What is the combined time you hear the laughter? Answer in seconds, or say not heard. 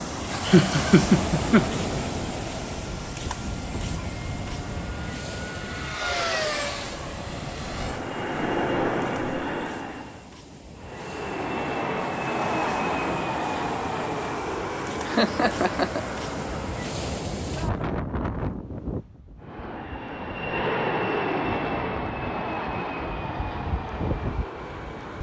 2 s.